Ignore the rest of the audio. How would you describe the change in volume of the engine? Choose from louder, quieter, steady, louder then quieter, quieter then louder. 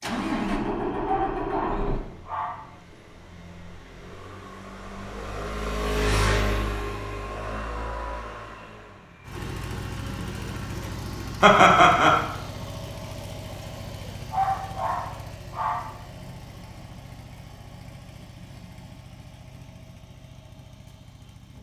quieter.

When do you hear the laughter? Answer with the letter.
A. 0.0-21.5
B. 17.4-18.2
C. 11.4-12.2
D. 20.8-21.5
C.